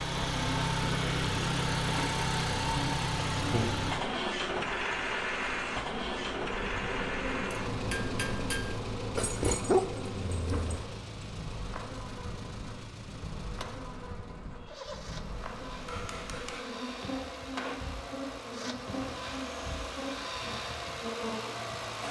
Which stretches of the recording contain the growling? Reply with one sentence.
The growling can be heard from 9.2 to 10.8 s.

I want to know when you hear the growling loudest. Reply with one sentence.
The loudest moment of the growling is at 10 seconds.